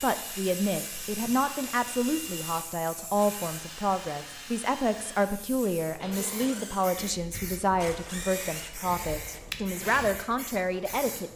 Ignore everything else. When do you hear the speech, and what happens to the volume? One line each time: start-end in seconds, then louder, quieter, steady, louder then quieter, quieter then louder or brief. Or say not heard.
0.0-11.3 steady.